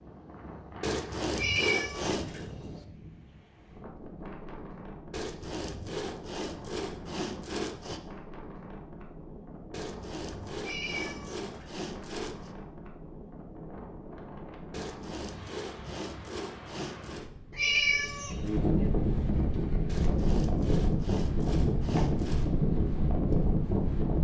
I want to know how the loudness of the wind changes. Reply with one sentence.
The loudness of the wind goes up.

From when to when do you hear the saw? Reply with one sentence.
The saw can be heard from 0.8 to 2.5 s, from 5.1 to 8.0 s, from 9.7 to 12.6 s, from 14.7 to 17.3 s and from 19.9 to 22.5 s.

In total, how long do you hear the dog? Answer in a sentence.
The dog can't be heard in this clip.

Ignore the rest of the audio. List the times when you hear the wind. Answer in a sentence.
You can hear the wind from 0.0 to 24.1 s.